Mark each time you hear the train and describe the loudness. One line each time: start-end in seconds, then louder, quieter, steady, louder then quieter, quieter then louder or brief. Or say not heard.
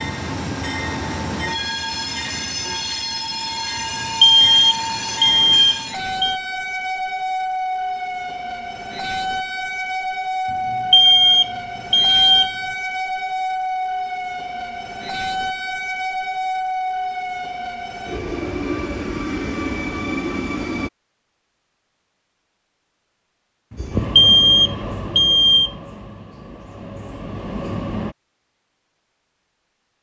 0.0-20.9 steady
23.8-28.1 quieter then louder.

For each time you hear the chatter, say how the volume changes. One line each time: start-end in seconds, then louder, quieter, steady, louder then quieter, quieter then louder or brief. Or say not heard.
not heard.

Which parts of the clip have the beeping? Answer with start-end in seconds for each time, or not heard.
4.0-6.3, 10.7-12.6, 23.7-25.7.